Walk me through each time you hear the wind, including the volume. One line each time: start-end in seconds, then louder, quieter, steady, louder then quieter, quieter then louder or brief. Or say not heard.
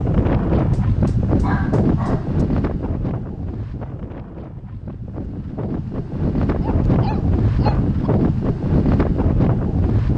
0.0-10.1 quieter then louder.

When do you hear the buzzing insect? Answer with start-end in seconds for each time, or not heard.
not heard.